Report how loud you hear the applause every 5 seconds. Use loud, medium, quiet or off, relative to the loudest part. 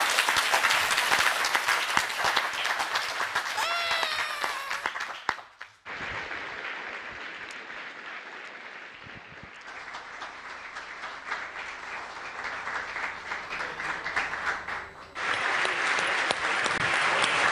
loud, quiet, medium, loud.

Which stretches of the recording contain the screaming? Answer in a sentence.
You can hear the screaming from 3.5 to 4.9 s.